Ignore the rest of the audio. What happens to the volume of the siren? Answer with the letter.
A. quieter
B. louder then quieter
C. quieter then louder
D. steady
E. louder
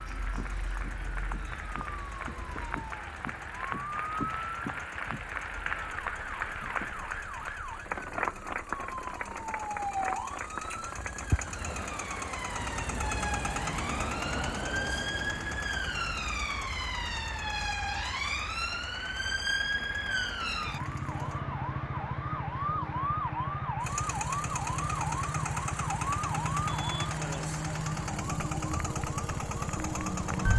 E.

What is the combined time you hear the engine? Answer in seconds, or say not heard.
28 s.